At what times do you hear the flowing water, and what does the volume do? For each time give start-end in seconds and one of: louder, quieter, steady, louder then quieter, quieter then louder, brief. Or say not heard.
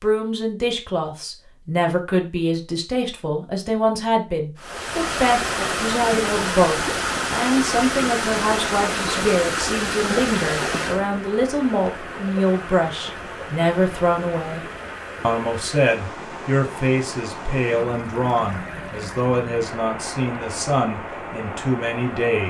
4.5-22.4 quieter.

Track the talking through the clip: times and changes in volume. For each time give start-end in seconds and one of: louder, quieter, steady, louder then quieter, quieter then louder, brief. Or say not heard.
0.0-22.4 steady.